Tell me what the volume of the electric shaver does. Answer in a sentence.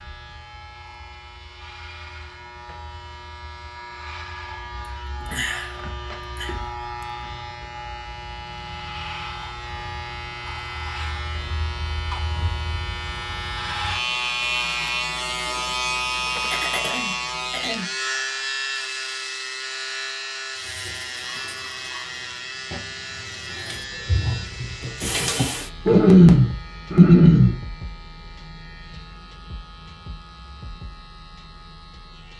The loudness of the electric shaver goes up, then down.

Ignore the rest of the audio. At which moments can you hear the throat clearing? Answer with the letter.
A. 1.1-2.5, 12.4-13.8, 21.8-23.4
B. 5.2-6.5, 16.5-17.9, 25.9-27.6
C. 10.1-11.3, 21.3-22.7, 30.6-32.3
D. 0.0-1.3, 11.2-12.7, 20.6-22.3
B.